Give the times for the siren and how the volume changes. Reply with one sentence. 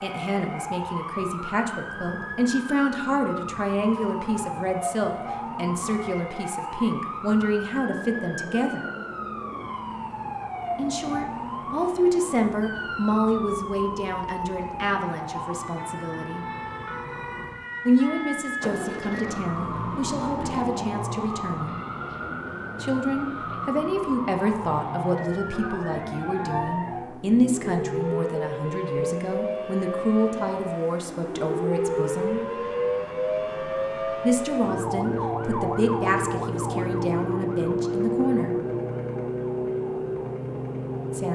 You can hear the siren from 0.0 to 41.3 s, getting louder.